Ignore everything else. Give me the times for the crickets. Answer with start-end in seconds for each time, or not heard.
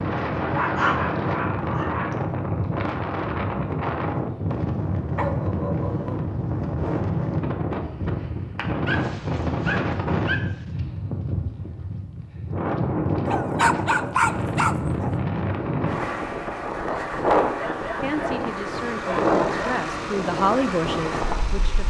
not heard.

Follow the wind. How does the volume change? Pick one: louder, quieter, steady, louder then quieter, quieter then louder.
steady.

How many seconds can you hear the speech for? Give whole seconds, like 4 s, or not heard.
4 s.